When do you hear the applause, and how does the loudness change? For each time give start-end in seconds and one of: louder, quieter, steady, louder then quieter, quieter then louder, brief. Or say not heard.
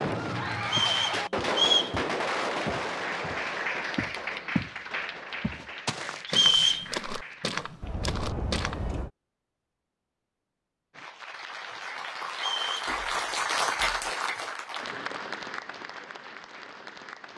3.0-7.5 quieter
10.9-17.3 louder then quieter.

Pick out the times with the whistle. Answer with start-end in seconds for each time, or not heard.
0.7-1.9, 6.2-6.8, 12.3-12.9.